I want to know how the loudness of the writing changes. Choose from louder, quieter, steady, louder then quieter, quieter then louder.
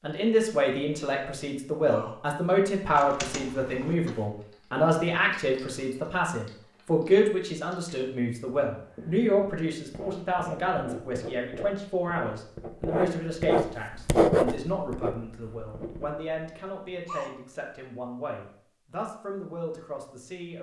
louder then quieter.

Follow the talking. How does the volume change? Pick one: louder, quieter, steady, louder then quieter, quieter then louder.
quieter.